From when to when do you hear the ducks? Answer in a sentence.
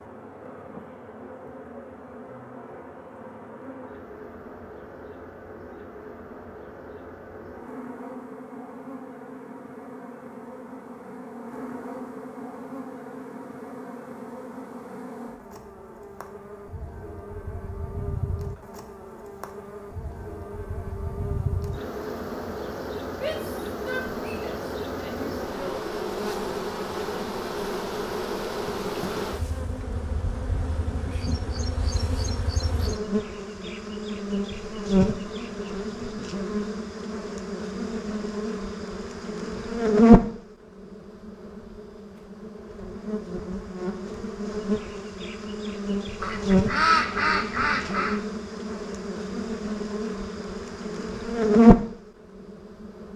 The ducks can be heard from 46.2 to 48.2 s.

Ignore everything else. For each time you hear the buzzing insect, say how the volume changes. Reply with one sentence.
You can hear the buzzing insect from 0.0 to 53.1 s, getting louder.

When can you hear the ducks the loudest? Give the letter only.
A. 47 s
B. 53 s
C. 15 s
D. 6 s
A.